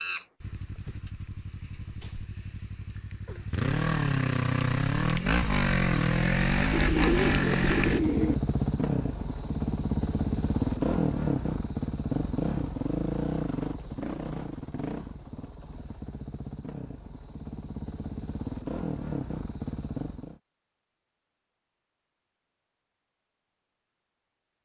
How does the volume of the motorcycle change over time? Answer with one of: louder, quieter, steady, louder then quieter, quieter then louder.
louder then quieter.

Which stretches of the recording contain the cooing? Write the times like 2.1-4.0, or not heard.
6.7-8.3.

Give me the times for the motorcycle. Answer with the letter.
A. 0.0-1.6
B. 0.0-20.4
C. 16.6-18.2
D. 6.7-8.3
B.